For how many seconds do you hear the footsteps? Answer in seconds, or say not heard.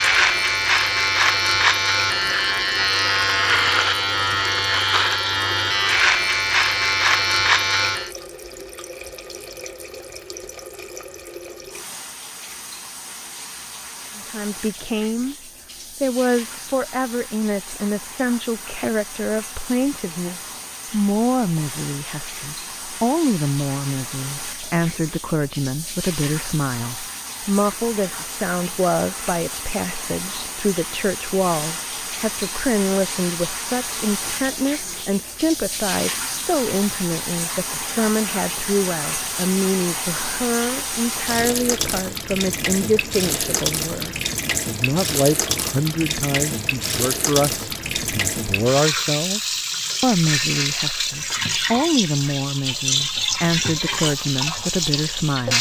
not heard.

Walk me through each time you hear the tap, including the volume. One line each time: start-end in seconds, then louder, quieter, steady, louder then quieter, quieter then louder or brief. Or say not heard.
0.0-55.5 louder.